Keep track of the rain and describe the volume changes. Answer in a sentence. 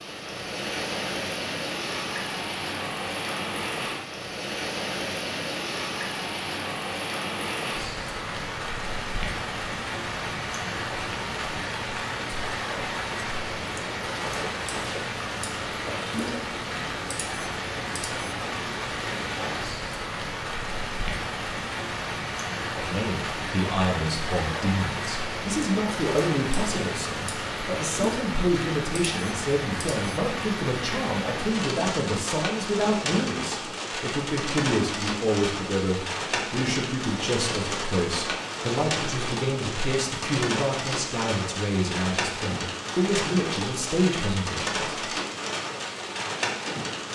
The volume of the rain stays about the same.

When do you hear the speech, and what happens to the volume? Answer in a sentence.
You can hear the speech from 22.8 to 44.8 s, at a steady volume.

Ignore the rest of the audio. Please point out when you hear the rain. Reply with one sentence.
The rain can be heard from 0.0 to 47.1 s.